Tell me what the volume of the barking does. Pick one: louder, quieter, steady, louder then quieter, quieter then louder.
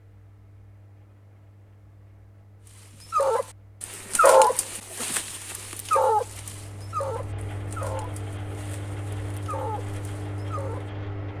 quieter.